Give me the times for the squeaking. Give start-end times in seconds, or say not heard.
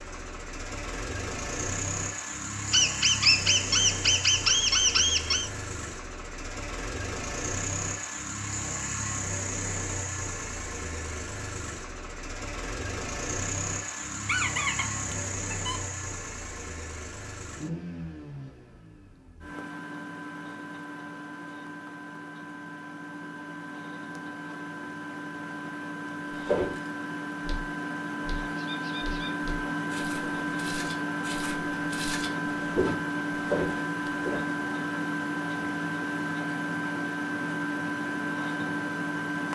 2.7-5.5, 14.2-15.8, 28.6-29.3.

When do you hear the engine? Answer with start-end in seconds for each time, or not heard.
0.0-39.5.